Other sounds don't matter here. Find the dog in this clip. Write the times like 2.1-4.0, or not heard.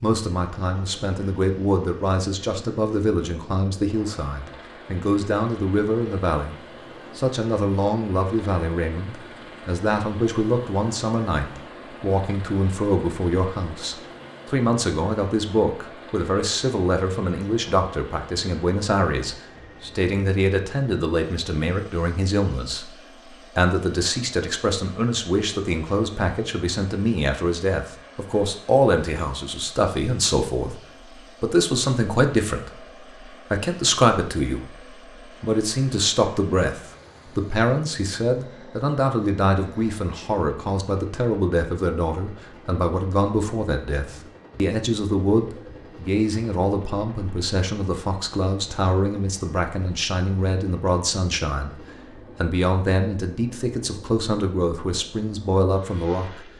not heard.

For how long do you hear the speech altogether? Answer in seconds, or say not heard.
55 s.